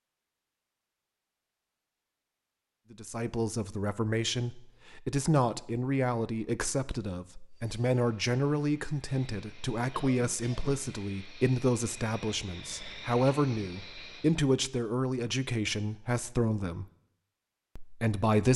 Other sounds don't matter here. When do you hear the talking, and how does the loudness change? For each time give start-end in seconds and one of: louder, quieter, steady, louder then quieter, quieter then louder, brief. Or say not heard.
2.9-16.9 steady
17.8-18.5 brief.